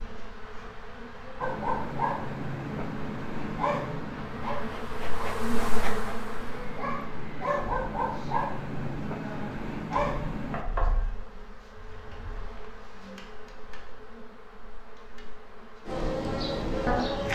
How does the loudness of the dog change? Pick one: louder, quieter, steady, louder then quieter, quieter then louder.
quieter then louder.